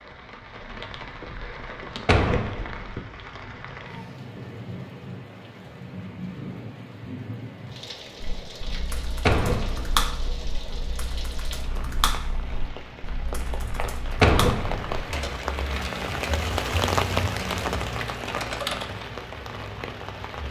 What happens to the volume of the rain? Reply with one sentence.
The loudness of the rain goes up.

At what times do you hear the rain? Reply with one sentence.
The rain can be heard from 0.0 to 20.4 s.